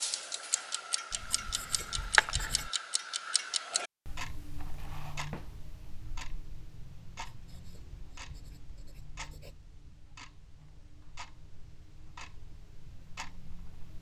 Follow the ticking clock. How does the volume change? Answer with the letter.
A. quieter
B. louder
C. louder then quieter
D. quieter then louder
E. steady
A.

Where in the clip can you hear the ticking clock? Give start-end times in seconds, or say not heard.
0.0-13.9.